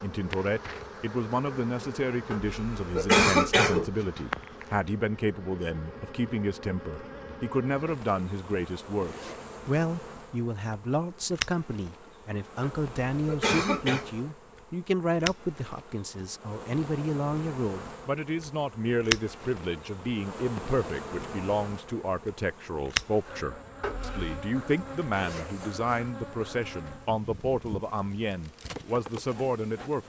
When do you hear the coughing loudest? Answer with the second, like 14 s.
3 s.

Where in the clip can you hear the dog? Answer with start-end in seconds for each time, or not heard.
not heard.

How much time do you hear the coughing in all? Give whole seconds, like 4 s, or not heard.
4 s.